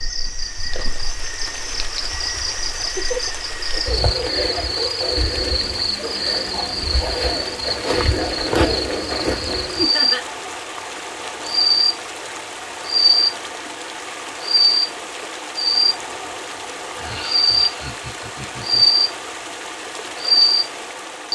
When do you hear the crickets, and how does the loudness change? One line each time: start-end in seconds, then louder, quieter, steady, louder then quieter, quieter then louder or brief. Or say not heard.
0.0-21.3 louder.